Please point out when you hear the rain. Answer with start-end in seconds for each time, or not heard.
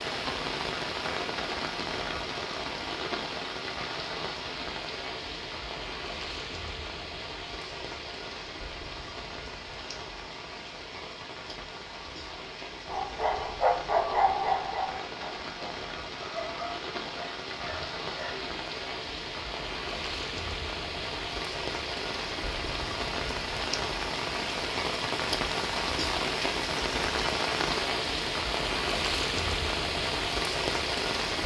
0.0-31.4.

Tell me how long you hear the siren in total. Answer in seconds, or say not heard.
not heard.